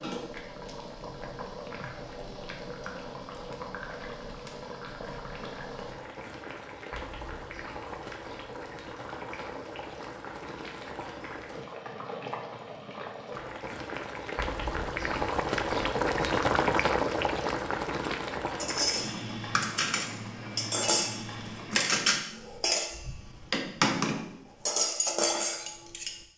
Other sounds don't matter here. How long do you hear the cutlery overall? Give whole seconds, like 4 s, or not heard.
8 s.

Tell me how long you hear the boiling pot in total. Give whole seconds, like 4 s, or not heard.
22 s.